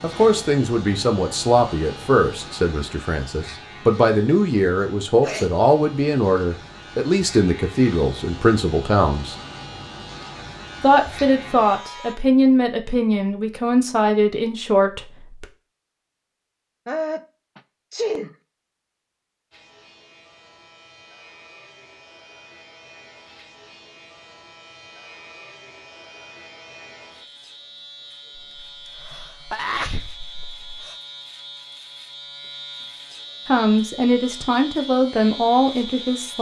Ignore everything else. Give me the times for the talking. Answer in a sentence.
You can hear the talking from 0.0 to 9.3 s, from 10.8 to 15.4 s and from 33.5 to 36.3 s.